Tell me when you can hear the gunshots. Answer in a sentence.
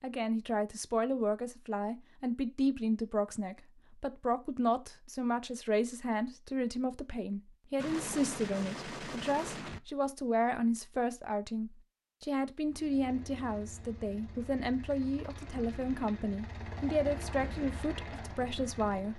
You can hear the gunshots from 7.8 to 9.8 s.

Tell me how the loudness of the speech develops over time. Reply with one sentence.
The loudness of the speech stays about the same.